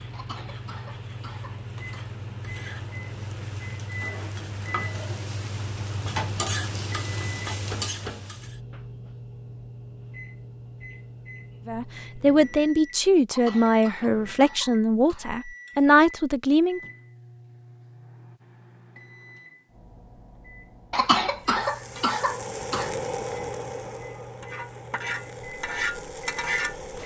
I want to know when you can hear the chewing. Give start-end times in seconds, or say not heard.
not heard.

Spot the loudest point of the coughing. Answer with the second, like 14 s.
21 s.